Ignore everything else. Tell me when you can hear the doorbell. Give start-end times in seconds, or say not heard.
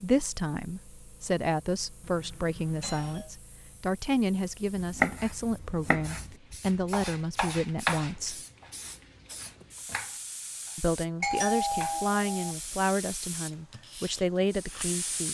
2.0-3.3, 11.2-12.6.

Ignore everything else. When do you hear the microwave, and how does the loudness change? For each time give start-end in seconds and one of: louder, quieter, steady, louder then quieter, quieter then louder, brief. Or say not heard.
not heard.